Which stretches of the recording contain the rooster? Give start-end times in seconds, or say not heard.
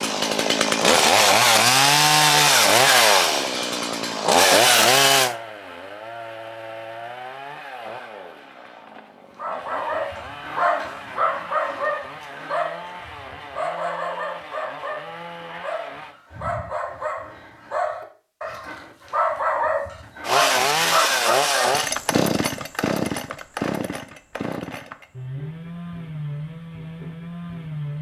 not heard.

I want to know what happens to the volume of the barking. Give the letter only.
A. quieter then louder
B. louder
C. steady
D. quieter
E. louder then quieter
A.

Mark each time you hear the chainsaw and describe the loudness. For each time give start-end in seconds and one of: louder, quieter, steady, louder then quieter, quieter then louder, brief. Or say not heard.
0.0-16.1 quieter
20.2-27.9 quieter.